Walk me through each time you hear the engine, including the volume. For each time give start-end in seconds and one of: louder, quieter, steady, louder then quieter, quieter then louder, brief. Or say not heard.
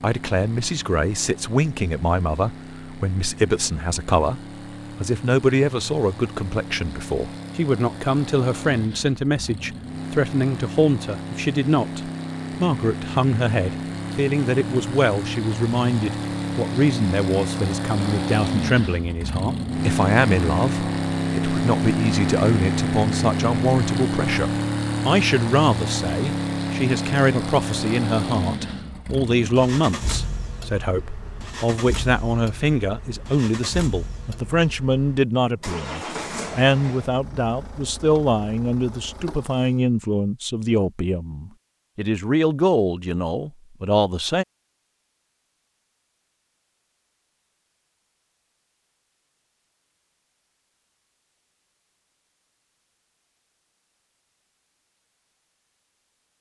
0.0-39.8 louder then quieter.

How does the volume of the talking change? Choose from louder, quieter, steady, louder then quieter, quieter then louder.
steady.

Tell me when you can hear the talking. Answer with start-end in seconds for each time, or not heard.
0.0-4.4, 5.0-44.5.